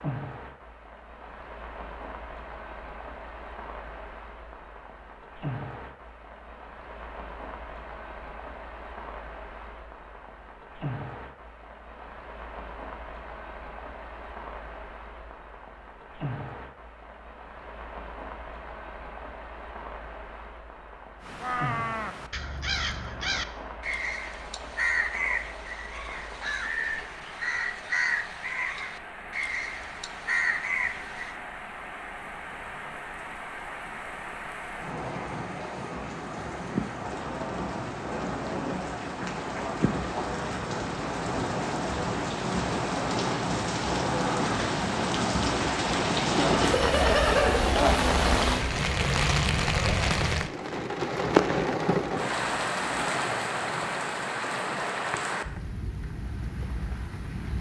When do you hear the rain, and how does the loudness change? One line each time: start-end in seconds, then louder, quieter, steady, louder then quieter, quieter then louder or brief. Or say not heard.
0.0-57.5 louder.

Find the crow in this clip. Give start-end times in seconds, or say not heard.
21.2-31.4.